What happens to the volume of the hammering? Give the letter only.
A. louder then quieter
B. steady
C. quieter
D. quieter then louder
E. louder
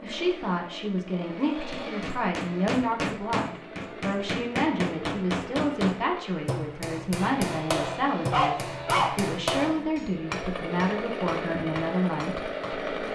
C.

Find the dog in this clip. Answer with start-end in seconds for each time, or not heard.
8.3-9.9.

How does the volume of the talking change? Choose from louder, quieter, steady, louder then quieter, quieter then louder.
steady.